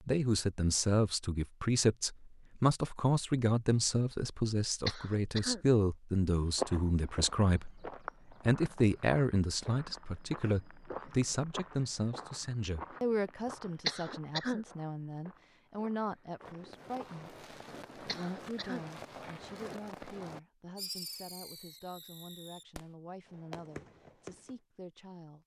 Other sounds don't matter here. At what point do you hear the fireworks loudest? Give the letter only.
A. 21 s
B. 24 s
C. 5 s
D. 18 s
A.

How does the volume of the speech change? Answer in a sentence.
The loudness of the speech goes down.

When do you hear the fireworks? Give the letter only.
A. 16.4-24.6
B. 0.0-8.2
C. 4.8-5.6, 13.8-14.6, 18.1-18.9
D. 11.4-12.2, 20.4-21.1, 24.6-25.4
A.